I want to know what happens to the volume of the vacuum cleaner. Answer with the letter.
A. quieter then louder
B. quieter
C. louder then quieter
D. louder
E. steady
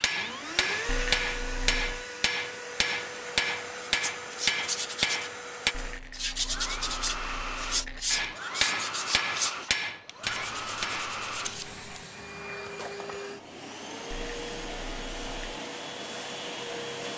E.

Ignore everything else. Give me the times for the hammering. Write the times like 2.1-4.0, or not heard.
0.0-5.8, 8.1-11.1.